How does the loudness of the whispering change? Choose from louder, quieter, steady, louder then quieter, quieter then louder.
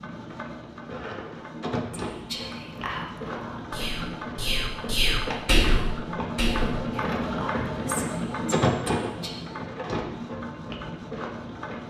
louder then quieter.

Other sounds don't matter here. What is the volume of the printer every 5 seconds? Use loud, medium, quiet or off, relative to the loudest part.
medium, loud, medium.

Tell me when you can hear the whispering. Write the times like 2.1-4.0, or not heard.
1.9-9.4.